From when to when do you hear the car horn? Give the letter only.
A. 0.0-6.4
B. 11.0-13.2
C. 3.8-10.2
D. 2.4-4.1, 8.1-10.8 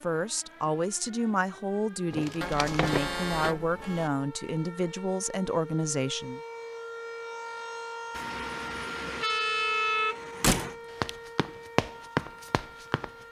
D.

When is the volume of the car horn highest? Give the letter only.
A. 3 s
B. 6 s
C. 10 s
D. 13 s
C.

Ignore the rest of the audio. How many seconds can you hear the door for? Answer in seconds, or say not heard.
2 s.